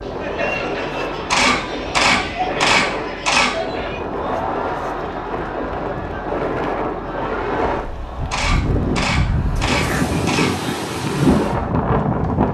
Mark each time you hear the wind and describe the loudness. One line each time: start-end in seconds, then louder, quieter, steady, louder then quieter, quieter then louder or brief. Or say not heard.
0.0-12.4 louder.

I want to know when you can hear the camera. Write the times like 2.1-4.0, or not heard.
1.3-3.5, 8.3-10.5.